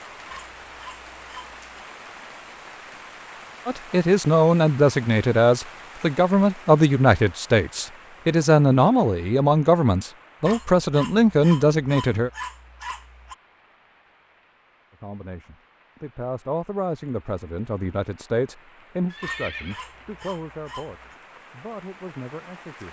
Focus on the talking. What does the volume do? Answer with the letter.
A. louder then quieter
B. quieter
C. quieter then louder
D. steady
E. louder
B.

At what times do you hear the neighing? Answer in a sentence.
You can hear the neighing from 19.1 to 20.2 s.